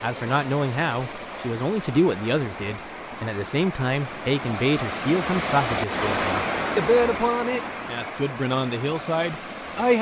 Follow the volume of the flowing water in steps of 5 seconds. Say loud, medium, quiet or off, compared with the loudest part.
medium, loud.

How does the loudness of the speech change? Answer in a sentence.
The loudness of the speech stays about the same.